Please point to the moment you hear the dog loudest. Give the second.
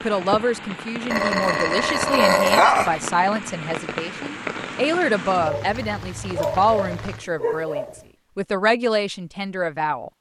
3 s.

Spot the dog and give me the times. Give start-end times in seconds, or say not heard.
1.1-3.0, 5.5-8.1.